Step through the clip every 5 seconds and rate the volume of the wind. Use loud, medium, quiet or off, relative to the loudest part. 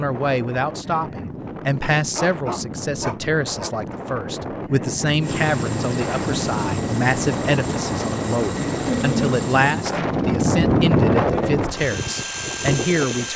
medium, medium, loud.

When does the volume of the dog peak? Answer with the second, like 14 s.
9 s.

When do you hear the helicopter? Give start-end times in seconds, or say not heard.
5.2-13.3.